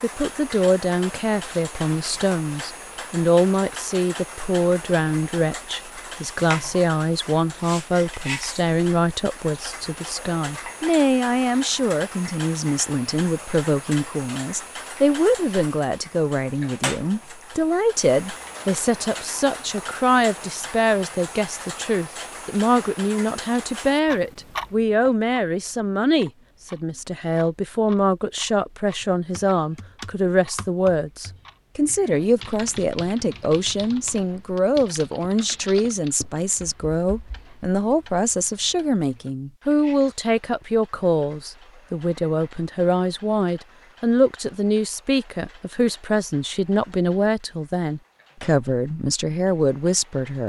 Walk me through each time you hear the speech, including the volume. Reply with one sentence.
The speech can be heard from 0.0 to 50.4 s, at a steady volume.